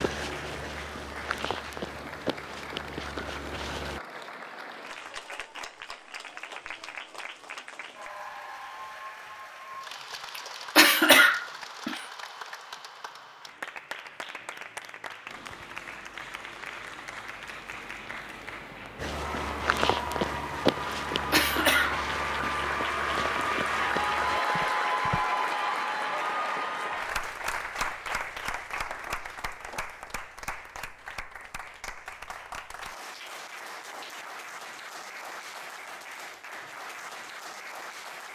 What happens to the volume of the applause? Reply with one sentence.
The loudness of the applause goes up, then down.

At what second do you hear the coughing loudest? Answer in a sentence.
The loudest moment of the coughing is at 11 seconds.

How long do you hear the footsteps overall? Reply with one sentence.
You can hear the footsteps for 10 seconds altogether.